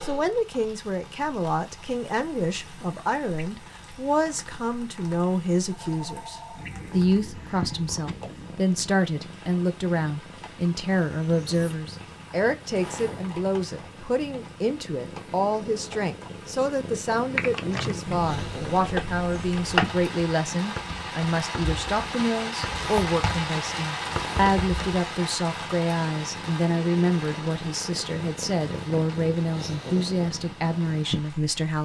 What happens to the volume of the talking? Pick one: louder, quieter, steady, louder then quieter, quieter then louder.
steady.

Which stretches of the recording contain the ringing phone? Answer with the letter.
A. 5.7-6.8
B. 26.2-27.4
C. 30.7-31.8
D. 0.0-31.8
A.